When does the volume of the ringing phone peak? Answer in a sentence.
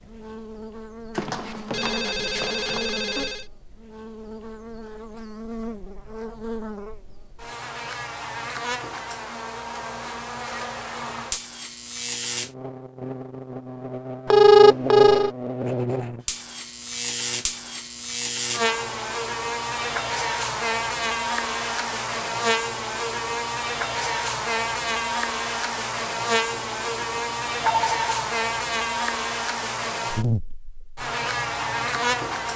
The loudest moment of the ringing phone is at 15 seconds.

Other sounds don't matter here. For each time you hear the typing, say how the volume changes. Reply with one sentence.
You can't hear the typing here.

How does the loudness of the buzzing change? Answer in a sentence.
The volume of the buzzing goes up.